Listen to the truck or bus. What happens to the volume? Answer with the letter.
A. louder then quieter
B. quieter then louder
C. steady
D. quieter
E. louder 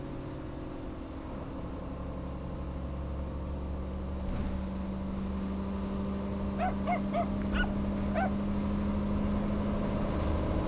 E.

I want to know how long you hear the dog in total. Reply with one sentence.
The dog can be heard for 2 seconds in total.